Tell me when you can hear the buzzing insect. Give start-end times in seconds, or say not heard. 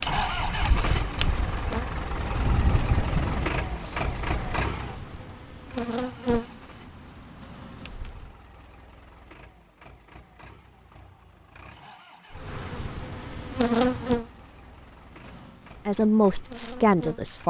0.0-8.3, 12.3-17.4.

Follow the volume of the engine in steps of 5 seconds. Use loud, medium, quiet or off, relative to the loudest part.
loud, quiet, quiet, quiet.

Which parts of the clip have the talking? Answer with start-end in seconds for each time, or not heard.
15.8-17.4.